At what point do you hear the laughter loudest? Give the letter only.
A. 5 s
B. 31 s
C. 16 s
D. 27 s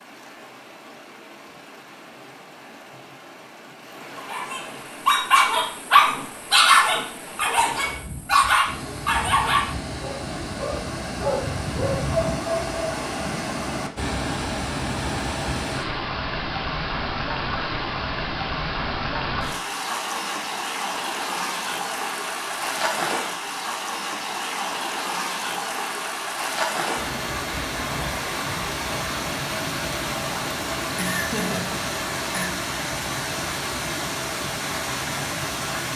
B.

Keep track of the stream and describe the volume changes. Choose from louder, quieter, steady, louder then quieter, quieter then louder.
louder.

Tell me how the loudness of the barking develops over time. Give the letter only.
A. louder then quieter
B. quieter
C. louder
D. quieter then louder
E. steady
B.